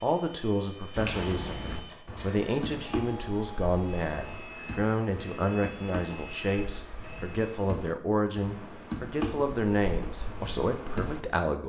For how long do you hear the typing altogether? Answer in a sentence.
You can hear the typing for 10 seconds altogether.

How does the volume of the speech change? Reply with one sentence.
The loudness of the speech stays about the same.